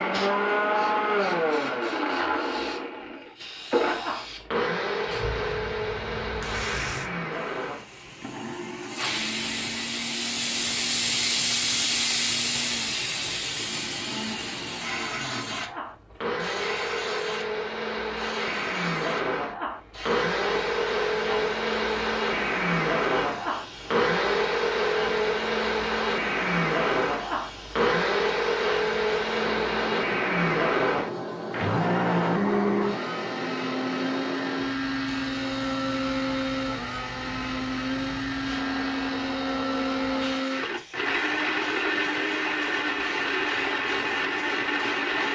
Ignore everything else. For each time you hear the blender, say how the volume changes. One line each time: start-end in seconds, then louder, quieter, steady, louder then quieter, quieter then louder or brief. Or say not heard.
0.0-45.2 quieter then louder.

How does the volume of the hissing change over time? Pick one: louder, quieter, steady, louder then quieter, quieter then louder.
louder then quieter.